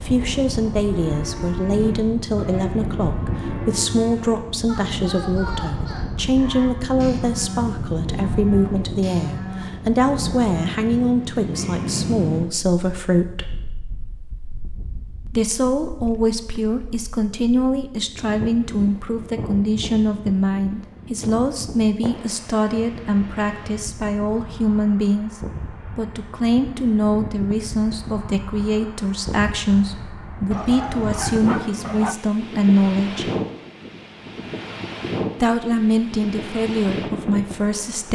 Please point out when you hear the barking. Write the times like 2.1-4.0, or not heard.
30.5-32.1.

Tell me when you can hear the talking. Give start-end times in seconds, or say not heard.
0.0-13.5, 15.2-33.3, 35.4-38.1.